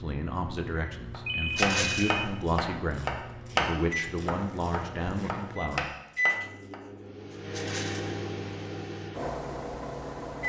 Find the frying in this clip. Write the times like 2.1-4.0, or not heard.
not heard.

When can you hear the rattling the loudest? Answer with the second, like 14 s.
2 s.